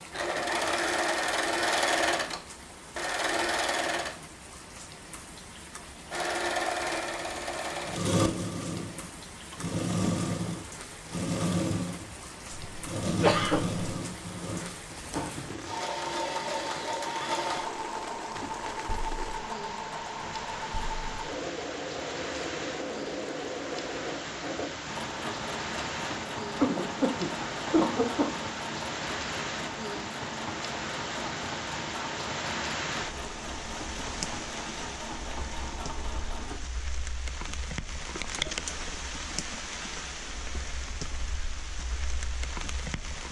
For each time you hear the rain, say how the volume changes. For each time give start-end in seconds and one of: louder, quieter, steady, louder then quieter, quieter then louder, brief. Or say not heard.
0.0-43.2 louder.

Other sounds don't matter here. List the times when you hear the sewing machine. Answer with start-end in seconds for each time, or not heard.
0.1-4.2, 6.1-36.6.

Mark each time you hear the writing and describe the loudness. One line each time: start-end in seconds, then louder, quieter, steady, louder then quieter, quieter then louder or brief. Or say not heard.
not heard.